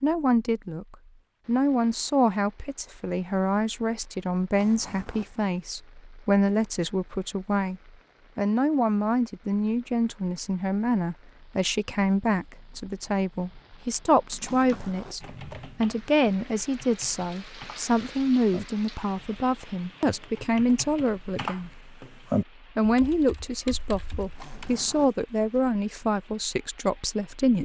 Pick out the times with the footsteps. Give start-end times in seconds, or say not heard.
not heard.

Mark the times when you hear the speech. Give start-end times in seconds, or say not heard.
0.0-21.8, 22.8-27.6.